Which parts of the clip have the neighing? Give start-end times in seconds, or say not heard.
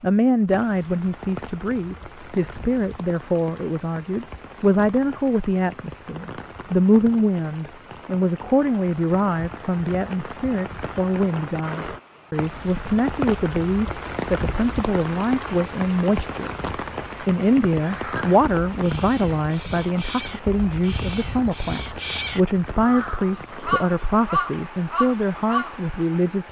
not heard.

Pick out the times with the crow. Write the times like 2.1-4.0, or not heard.
17.8-25.9.